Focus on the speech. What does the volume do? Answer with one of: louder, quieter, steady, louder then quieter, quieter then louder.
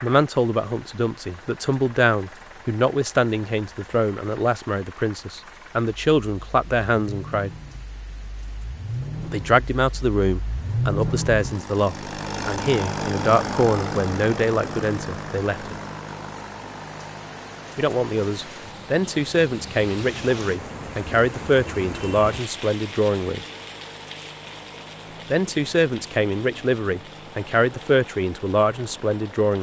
steady.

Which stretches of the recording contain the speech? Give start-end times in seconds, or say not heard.
0.0-7.5, 9.2-15.8, 17.8-23.4, 25.3-29.5.